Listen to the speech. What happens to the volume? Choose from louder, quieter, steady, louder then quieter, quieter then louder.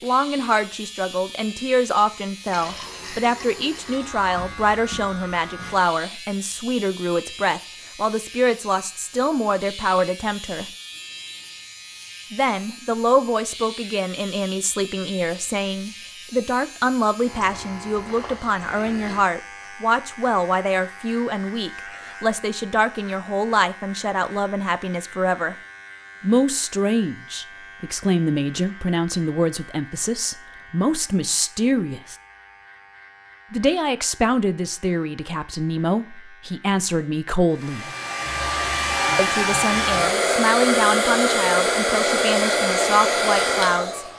steady.